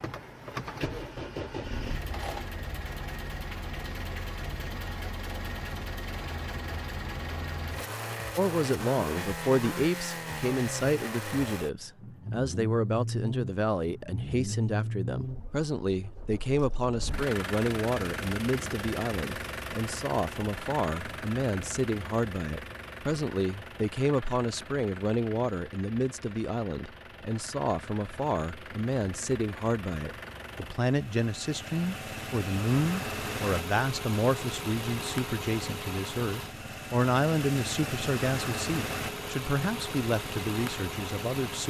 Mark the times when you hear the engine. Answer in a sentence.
The engine can be heard from 0.0 to 41.6 s.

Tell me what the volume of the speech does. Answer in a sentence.
The loudness of the speech stays about the same.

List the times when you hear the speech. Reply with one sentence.
The speech can be heard from 8.3 to 41.6 s.